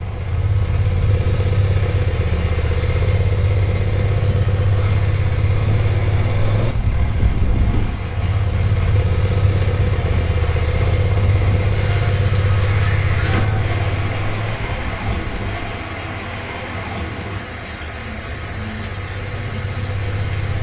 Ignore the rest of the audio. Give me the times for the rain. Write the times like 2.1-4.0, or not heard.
0.0-20.5.